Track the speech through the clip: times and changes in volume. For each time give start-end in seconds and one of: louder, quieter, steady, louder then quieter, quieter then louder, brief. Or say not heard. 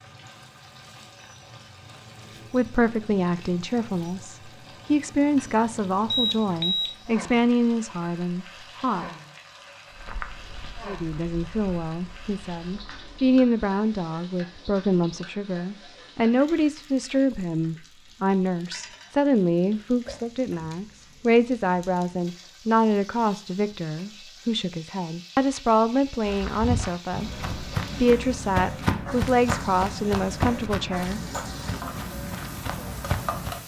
2.5-9.1 steady
10.8-31.2 steady.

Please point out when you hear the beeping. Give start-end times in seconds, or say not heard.
6.1-7.0.